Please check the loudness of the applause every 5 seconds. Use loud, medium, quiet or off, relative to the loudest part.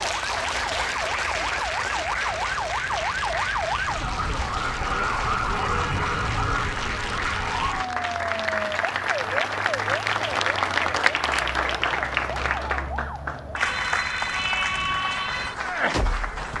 loud, loud, loud, medium.